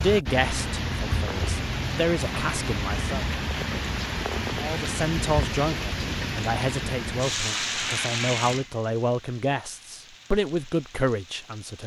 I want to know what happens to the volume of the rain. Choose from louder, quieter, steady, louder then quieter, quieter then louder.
quieter.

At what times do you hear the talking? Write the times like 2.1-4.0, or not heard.
0.0-3.3, 4.6-11.8.